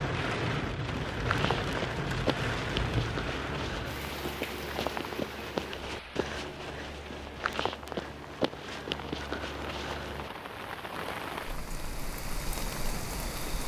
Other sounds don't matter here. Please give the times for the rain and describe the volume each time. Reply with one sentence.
The rain can be heard from 0.0 to 13.6 s, getting quieter then louder.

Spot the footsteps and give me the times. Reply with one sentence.
The footsteps can be heard from 0.9 to 10.3 s.